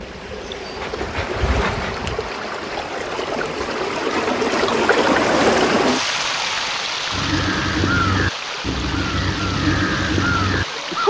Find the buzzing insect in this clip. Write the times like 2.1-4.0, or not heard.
0.0-2.4.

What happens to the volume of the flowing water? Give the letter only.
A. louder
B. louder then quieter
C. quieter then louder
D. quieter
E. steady
B.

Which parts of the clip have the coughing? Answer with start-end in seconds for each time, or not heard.
not heard.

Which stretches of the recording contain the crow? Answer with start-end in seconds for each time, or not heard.
7.1-11.0.